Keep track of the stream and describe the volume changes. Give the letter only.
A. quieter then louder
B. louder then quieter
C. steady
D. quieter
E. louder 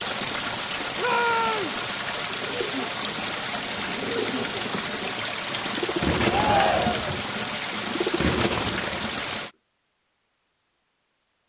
C.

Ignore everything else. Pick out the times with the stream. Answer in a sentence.
The stream can be heard from 0.0 to 9.5 s.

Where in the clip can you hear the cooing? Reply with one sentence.
You can hear the cooing from 2.3 to 9.3 s.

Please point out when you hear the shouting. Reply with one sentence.
The shouting can be heard from 0.9 to 1.8 s and from 6.2 to 7.2 s.